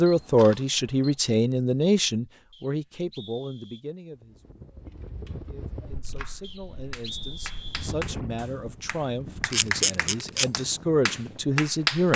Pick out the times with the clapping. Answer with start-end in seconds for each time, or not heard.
6.9-12.1.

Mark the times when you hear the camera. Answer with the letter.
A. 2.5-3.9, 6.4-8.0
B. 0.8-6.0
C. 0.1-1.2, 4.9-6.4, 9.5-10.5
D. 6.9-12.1
C.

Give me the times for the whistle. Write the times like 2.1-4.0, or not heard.
2.5-3.9, 6.4-8.0.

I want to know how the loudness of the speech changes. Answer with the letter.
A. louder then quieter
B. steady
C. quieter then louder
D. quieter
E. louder
C.